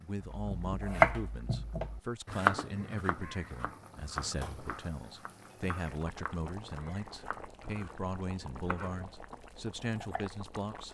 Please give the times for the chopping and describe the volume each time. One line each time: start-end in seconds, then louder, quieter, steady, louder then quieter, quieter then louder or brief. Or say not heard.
0.2-9.2 quieter
9.9-10.3 brief.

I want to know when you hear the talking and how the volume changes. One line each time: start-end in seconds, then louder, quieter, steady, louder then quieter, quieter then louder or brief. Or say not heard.
0.0-10.8 steady.